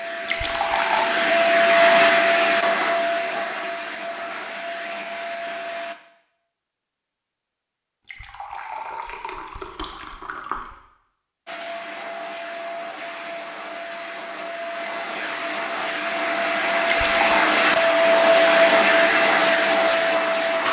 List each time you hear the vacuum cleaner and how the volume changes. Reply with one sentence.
The vacuum cleaner can be heard from 0.0 to 6.0 s, getting louder then quieter; and from 11.4 to 20.6 s, getting louder.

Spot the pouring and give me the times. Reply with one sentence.
The pouring can be heard from 0.2 to 1.1 s, from 8.0 to 10.8 s and from 16.8 to 17.5 s.